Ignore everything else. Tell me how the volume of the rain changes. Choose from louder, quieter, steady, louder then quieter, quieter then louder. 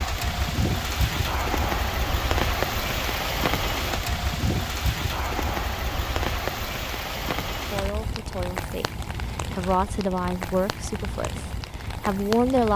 quieter.